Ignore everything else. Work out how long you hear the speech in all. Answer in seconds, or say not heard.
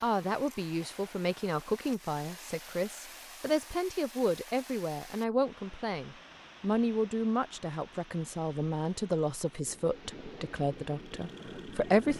12 s.